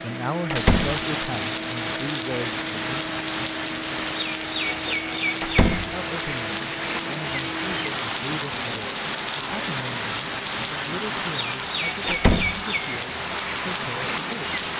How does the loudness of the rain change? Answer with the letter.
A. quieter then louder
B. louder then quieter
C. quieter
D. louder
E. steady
E.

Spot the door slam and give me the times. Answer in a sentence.
The door slam can be heard from 0.5 to 1.1 s, from 5.4 to 6.0 s and from 12.1 to 12.6 s.